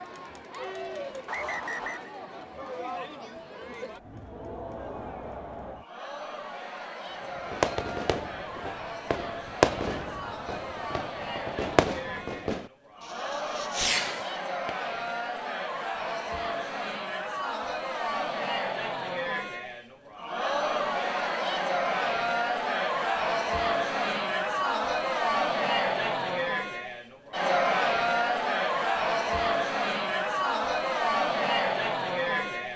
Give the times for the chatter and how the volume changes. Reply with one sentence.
The chatter can be heard from 0.0 to 32.7 s, getting louder.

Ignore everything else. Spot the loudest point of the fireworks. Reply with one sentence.
The volume of the fireworks peaks at 10 seconds.